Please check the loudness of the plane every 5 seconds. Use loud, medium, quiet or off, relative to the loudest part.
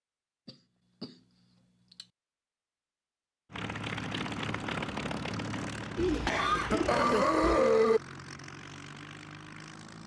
loud, medium.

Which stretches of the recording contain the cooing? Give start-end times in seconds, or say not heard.
6.0-7.6.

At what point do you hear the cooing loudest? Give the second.
6 s.